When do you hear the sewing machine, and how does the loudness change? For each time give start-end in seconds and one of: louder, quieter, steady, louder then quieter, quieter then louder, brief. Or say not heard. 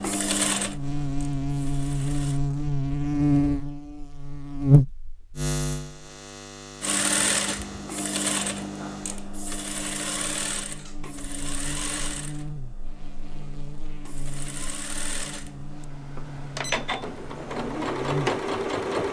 0.0-2.4 brief
6.8-19.0 quieter then louder.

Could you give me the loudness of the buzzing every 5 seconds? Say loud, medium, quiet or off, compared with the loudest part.
loud, quiet, quiet, quiet.